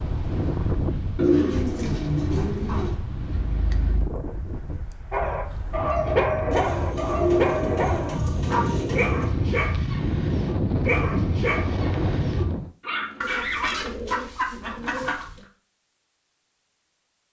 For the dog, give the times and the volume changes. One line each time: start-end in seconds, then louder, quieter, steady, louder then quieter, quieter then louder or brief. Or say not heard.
5.1-13.8 quieter.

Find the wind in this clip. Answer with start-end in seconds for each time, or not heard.
0.0-12.8.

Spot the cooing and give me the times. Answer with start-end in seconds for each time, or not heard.
1.1-3.0, 6.5-9.3, 13.2-15.4.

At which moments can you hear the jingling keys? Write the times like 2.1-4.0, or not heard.
3.3-4.1, 12.9-14.1.